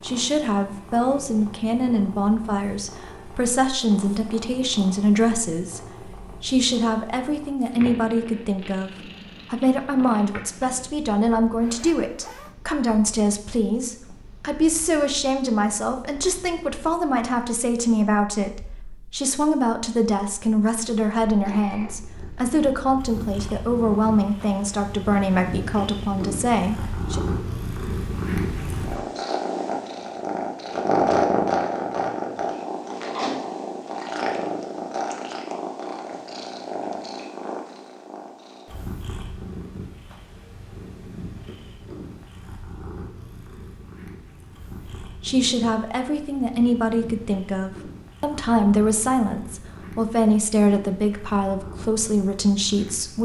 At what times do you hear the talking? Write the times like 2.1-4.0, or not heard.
0.0-27.2, 45.0-53.2.